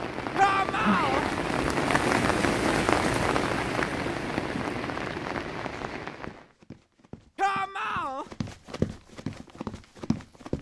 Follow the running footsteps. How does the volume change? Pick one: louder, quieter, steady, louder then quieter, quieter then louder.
louder then quieter.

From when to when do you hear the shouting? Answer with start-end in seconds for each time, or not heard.
0.3-1.2, 7.3-8.2.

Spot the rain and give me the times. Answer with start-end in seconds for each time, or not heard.
0.0-6.5.